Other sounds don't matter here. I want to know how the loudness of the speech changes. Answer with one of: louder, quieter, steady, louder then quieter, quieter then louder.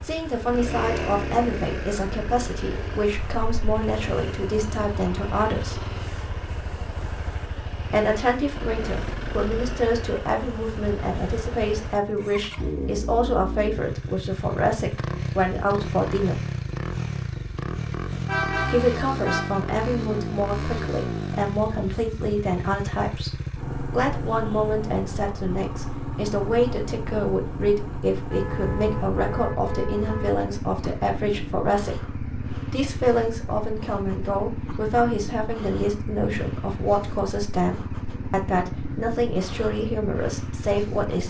steady.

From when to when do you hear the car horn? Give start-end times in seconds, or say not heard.
3.1-3.6, 18.2-19.6, 28.3-30.3.